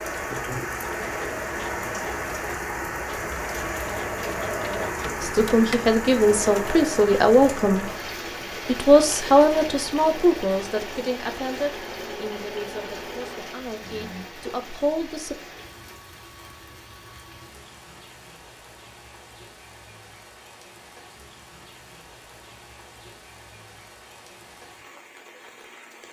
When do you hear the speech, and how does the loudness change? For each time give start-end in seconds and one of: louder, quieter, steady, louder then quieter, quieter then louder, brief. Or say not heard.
5.2-7.9 brief
8.7-15.3 quieter then louder.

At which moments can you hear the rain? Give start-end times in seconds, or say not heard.
0.0-26.0.